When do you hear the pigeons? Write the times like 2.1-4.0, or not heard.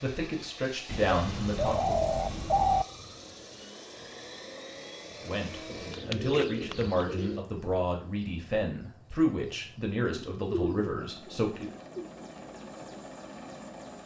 0.8-2.9, 5.7-7.4, 10.1-12.1.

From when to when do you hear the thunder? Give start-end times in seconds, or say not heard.
not heard.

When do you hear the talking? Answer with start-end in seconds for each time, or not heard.
0.0-2.0, 5.2-11.7.